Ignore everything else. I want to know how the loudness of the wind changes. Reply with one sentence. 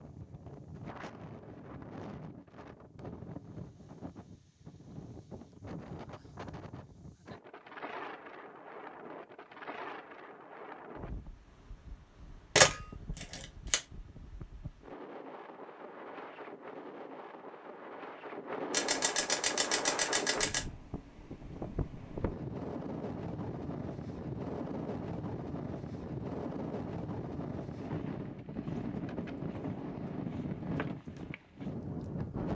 The loudness of the wind goes up.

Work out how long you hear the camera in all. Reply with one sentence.
You can hear the camera for 3 seconds altogether.